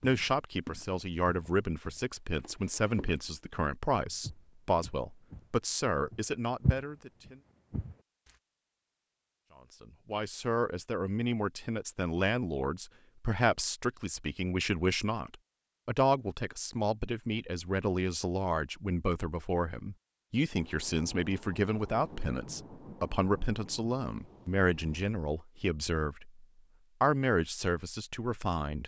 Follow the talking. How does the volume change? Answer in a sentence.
The volume of the talking stays about the same.